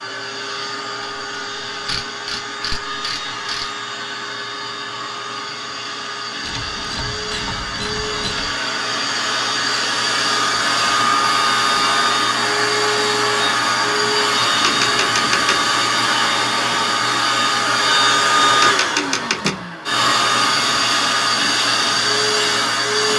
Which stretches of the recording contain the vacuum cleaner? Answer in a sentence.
The vacuum cleaner can be heard from 0.0 to 23.1 s.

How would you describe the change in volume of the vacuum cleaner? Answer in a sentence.
The loudness of the vacuum cleaner goes up.